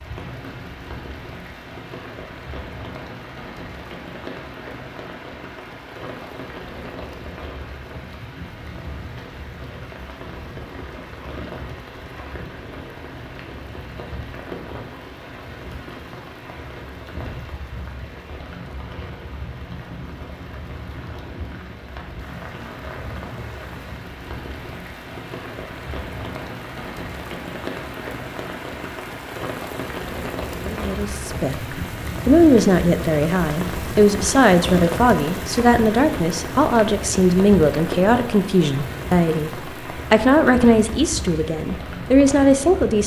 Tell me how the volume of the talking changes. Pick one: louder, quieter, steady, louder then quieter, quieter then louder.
steady.